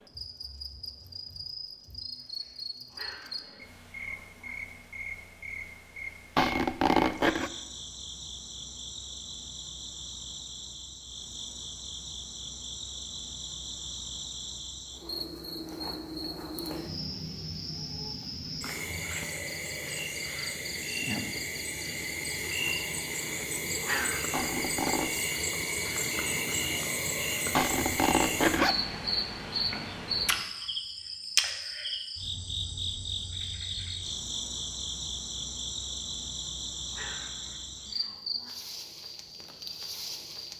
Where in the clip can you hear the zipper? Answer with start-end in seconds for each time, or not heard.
6.3-7.5, 24.3-25.1, 27.6-28.8.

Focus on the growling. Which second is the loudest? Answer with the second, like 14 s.
24 s.